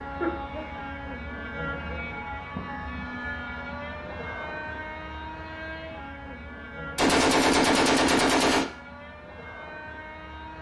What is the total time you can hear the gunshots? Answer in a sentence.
The gunshots can be heard for 2 seconds in total.